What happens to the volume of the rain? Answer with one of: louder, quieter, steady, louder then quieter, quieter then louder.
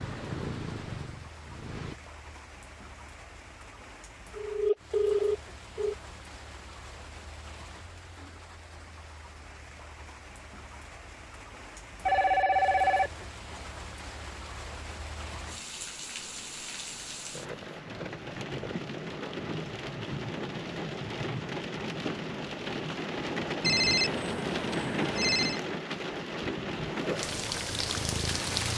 louder.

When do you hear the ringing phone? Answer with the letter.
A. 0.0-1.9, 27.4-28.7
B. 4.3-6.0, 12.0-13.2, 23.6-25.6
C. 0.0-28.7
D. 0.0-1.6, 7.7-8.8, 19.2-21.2
B.